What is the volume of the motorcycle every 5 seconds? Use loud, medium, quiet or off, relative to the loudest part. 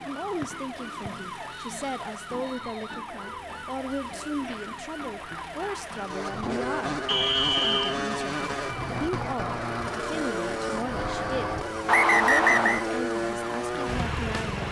off, loud, loud.